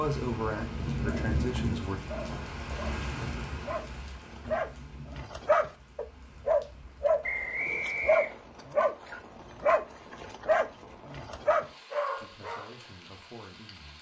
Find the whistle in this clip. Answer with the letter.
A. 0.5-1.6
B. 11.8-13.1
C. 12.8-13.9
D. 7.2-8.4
D.